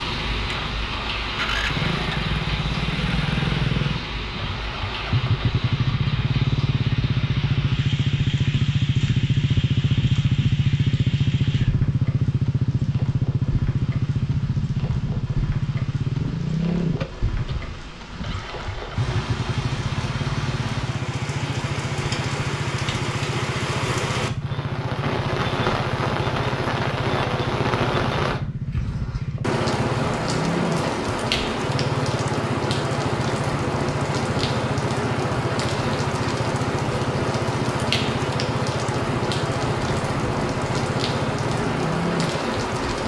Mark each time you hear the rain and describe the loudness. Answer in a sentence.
You can hear the rain from 0.0 to 43.0 s, getting quieter then louder.